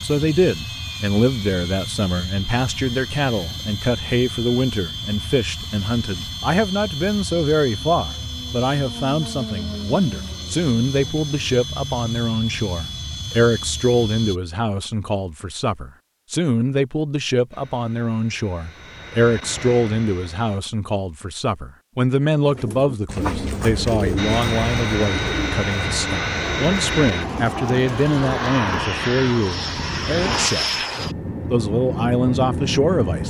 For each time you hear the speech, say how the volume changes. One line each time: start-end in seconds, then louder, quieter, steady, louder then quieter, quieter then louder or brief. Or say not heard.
0.0-30.8 steady
31.5-33.2 brief.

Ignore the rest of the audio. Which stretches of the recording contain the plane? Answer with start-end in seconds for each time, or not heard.
0.0-14.4, 17.5-20.6, 24.1-33.2.